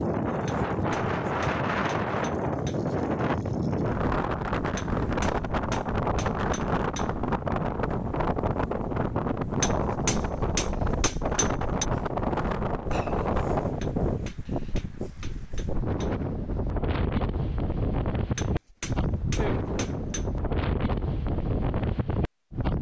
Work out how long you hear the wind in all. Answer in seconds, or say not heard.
23 s.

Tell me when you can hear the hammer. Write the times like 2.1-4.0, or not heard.
0.5-2.8, 4.8-7.1, 9.6-11.8, 13.8-16.1, 18.4-20.2.